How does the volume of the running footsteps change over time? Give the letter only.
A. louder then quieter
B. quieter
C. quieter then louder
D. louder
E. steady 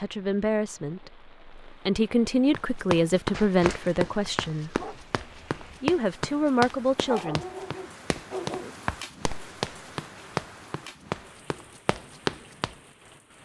C.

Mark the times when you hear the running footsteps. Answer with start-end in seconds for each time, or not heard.
2.5-12.8.